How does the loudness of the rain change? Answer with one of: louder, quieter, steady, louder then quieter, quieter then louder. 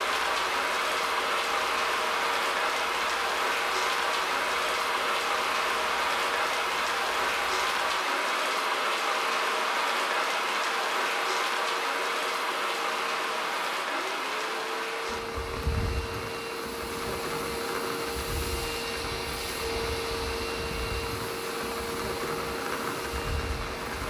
quieter.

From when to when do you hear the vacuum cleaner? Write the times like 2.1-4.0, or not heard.
0.0-24.0.